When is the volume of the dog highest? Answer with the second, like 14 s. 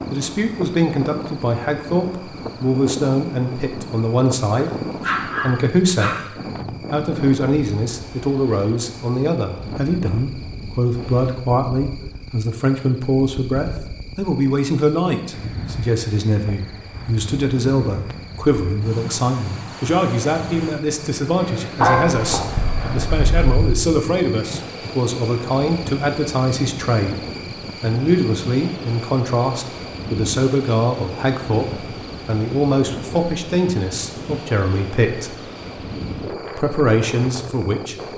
22 s.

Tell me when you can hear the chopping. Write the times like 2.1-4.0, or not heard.
not heard.